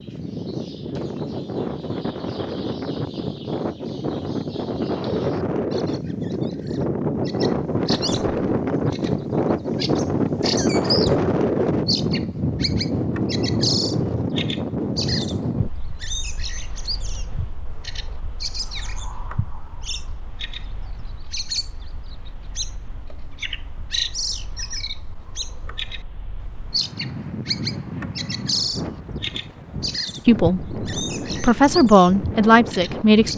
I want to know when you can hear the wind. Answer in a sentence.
The wind can be heard from 0.0 to 33.3 s.